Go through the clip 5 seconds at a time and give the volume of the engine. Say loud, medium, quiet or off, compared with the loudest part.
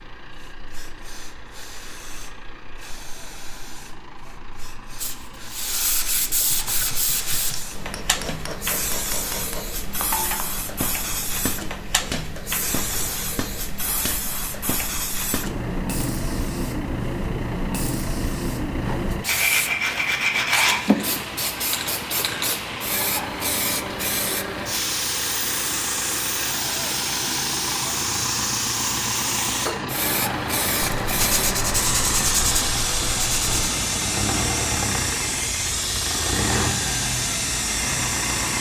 quiet, quiet, quiet, medium, medium, loud, loud, loud.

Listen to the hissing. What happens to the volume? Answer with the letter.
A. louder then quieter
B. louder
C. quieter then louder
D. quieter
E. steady
B.